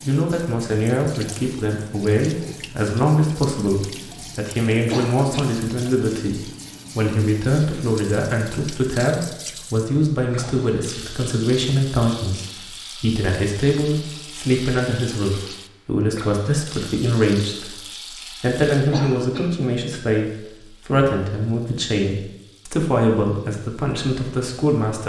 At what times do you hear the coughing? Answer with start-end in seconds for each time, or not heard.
4.9-5.5, 18.9-19.7.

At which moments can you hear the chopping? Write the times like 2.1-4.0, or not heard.
not heard.